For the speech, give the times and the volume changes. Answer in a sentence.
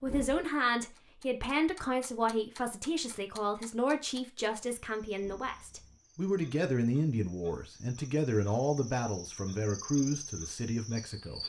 The speech can be heard from 0.0 to 11.4 s, at a steady volume.